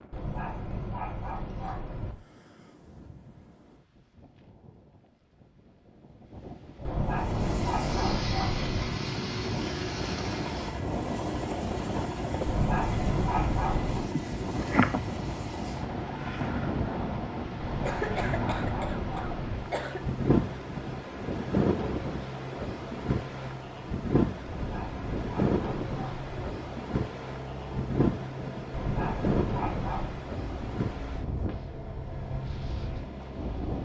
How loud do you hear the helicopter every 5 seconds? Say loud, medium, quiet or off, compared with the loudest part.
off, loud, loud, medium, medium, medium, medium.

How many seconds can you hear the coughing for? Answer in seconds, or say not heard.
3 s.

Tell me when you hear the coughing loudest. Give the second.
15 s.